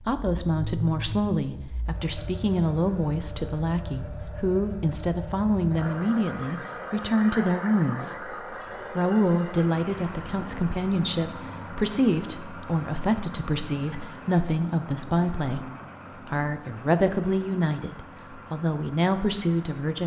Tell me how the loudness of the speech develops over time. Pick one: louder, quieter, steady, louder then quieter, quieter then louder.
steady.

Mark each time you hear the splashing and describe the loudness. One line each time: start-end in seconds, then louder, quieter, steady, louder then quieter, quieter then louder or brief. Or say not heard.
not heard.